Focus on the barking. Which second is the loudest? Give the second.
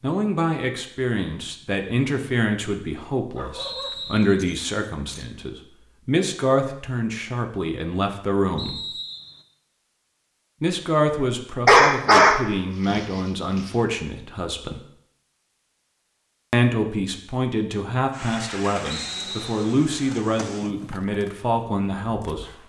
12 s.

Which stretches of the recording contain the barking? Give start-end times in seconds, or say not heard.
3.3-5.3, 11.7-13.1.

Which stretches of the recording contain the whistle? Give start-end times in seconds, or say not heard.
3.5-4.5, 8.6-9.4, 18.9-19.8.